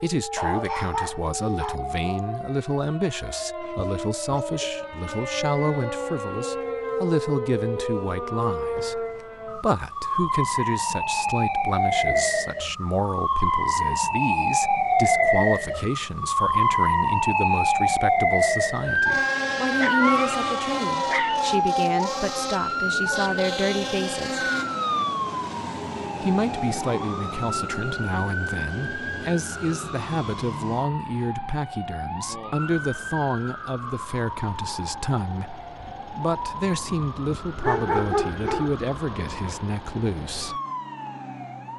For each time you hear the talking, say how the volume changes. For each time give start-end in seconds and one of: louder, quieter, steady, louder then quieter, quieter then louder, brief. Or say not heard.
0.0-24.4 steady
26.2-40.6 steady.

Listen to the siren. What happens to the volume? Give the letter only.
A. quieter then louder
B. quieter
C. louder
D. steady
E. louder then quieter
E.